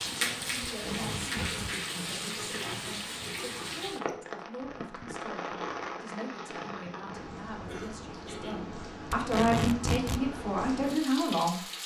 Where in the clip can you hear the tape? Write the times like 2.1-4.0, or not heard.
0.7-1.8, 9.1-10.2.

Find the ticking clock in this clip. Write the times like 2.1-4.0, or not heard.
not heard.